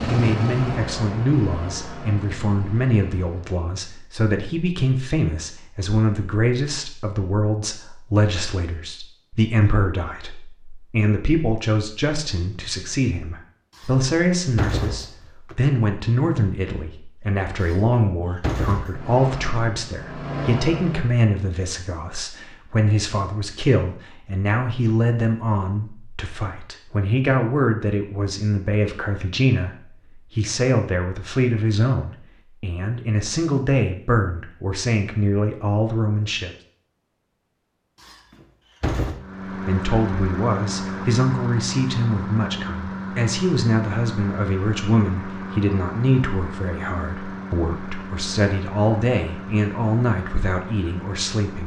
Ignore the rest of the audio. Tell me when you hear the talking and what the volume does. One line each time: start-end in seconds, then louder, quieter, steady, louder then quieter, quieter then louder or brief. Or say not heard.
0.1-36.5 steady
39.6-51.6 steady.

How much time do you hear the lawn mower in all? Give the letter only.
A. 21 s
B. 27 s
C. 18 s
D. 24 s
C.